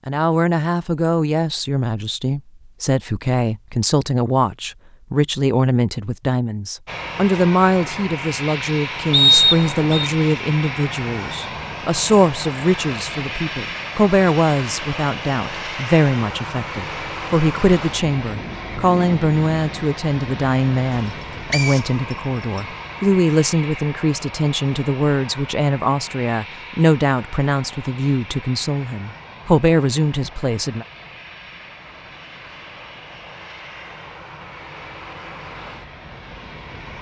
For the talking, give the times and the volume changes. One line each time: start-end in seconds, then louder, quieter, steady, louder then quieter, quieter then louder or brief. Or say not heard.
0.1-30.9 steady.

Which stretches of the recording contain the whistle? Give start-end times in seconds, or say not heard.
9.1-10.1, 21.5-22.6.